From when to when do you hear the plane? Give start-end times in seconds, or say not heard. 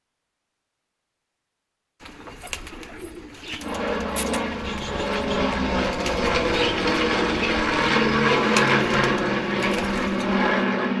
3.6-10.9.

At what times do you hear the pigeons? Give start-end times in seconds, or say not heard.
2.0-10.4.